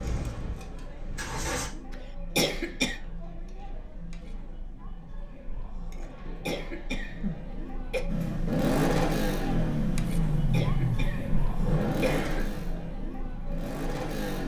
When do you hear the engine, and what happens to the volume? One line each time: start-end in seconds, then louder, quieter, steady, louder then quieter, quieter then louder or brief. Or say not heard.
0.0-1.7 brief
8.1-14.4 quieter.